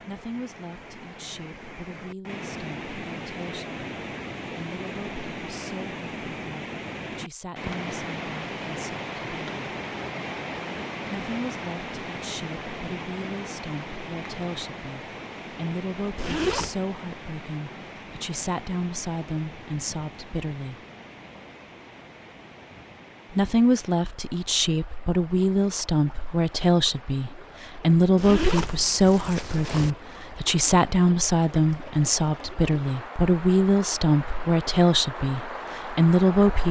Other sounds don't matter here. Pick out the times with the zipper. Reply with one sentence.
The zipper can be heard from 16.1 to 16.8 s and from 28.1 to 29.9 s.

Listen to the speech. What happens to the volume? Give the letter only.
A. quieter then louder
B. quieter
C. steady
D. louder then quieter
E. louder
E.